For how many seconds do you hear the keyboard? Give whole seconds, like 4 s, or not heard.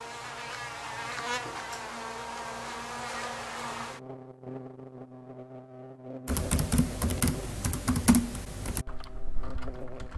4 s.